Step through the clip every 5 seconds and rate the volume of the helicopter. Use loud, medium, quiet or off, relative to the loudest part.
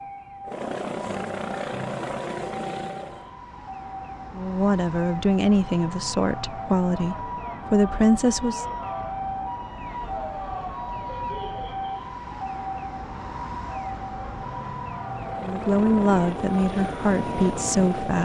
loud, off, off, loud.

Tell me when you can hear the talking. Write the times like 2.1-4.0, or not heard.
4.3-8.7, 15.4-18.1.